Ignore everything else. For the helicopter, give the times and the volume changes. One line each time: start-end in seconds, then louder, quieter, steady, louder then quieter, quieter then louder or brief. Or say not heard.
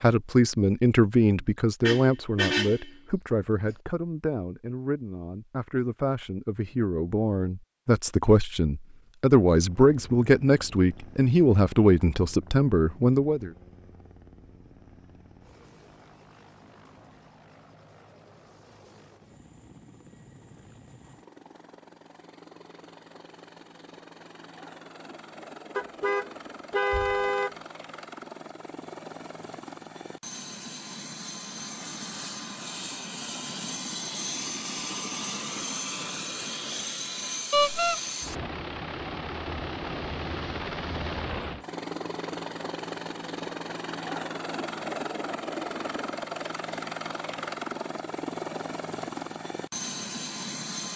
9.5-50.9 louder.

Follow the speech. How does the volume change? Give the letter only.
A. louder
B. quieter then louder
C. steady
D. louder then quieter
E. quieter
B.